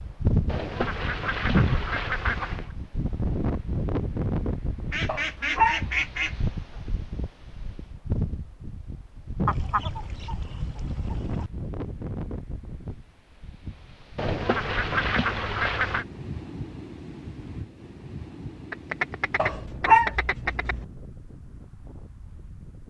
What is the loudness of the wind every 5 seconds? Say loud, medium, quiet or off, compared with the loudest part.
loud, medium, medium, medium, quiet.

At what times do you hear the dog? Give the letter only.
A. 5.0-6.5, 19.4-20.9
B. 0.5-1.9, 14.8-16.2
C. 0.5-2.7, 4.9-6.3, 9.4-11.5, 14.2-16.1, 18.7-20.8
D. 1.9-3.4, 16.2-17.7
A.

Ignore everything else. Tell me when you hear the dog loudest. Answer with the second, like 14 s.
20 s.